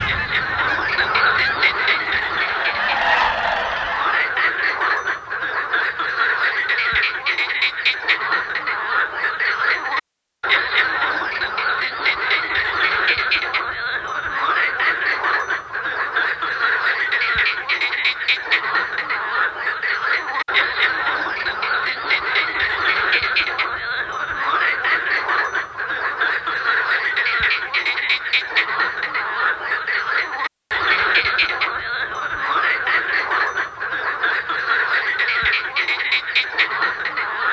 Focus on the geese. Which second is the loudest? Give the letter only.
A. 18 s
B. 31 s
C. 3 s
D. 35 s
C.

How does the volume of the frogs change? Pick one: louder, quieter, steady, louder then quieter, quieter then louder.
steady.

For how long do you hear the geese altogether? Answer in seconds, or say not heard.
4 s.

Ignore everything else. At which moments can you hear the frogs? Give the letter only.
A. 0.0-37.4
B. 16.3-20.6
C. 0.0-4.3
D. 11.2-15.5
A.